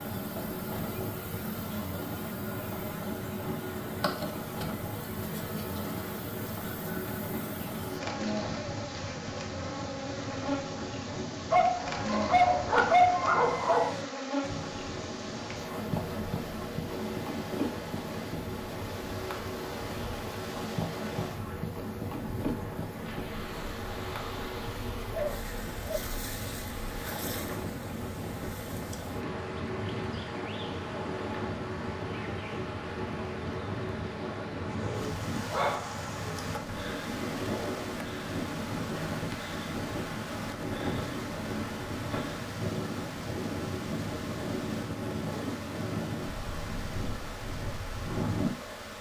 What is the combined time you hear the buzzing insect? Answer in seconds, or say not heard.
49 s.